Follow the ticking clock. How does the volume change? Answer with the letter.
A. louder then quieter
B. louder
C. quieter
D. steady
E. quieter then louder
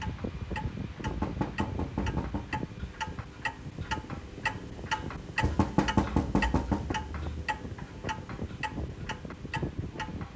A.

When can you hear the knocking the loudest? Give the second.
6 s.